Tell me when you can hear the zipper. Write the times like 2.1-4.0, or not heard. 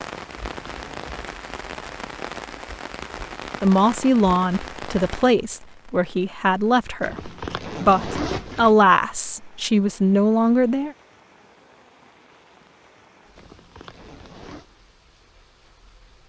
0.1-1.1, 7.0-8.8, 13.3-14.7.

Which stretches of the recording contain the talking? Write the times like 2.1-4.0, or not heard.
3.6-10.9.